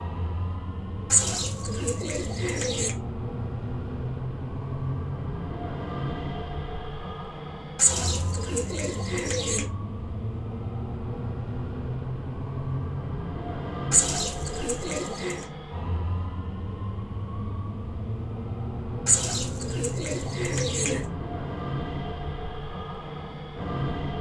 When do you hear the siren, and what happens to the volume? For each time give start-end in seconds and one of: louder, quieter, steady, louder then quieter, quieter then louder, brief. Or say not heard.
not heard.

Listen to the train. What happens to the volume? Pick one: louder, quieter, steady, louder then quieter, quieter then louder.
steady.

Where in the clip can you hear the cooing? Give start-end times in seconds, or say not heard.
1.1-3.0, 7.8-9.7, 13.9-15.4, 19.1-21.1.